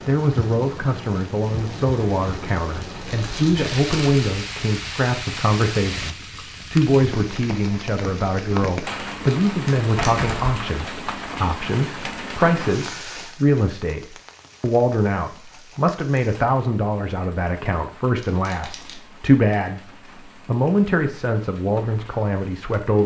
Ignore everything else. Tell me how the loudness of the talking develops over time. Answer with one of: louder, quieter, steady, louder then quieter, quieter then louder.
steady.